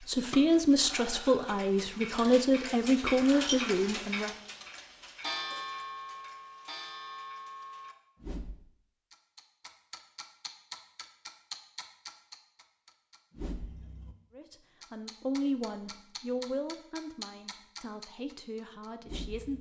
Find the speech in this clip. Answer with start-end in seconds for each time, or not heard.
0.0-4.3, 14.3-19.5.